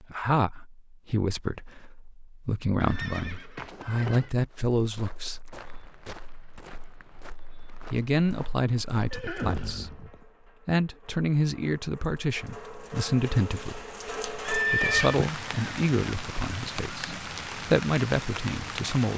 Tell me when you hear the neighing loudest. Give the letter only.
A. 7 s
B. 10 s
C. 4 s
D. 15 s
D.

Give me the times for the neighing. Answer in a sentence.
You can hear the neighing from 2.8 to 4.3 s, from 9.1 to 10.2 s and from 14.4 to 15.2 s.